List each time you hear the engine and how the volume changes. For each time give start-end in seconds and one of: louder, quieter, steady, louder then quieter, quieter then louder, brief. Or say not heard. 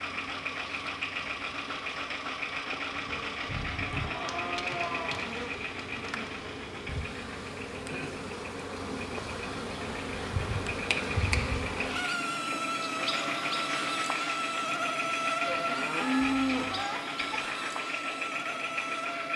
0.0-19.3 quieter then louder.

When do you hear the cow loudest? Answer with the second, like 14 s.
16 s.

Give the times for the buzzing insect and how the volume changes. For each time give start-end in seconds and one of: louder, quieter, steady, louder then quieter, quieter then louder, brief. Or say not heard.
0.0-19.3 louder.